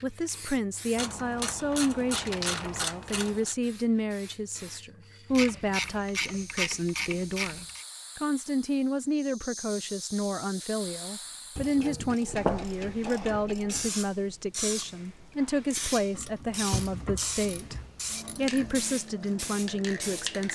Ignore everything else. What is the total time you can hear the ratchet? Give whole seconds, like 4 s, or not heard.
10 s.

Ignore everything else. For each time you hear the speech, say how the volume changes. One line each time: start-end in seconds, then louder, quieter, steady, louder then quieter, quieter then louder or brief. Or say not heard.
0.0-17.8 steady
18.4-20.5 brief.